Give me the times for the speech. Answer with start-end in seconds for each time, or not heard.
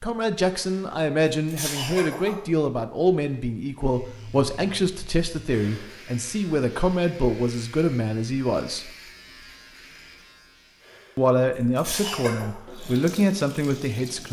0.0-8.9, 11.2-14.2.